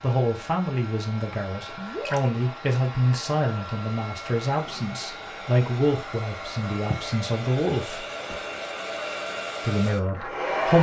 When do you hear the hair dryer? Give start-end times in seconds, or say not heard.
0.0-10.7.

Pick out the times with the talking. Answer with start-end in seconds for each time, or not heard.
0.0-8.1, 9.6-10.7.